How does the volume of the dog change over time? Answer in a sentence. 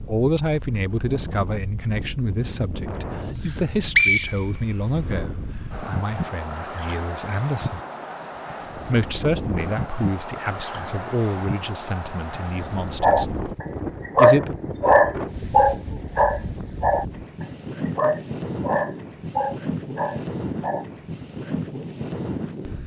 The volume of the dog goes down.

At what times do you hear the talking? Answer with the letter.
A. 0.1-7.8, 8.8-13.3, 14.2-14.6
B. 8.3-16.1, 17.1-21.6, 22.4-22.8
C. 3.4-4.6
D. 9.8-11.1
A.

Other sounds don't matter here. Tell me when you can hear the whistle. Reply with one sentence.
The whistle can be heard from 3.4 to 4.6 s.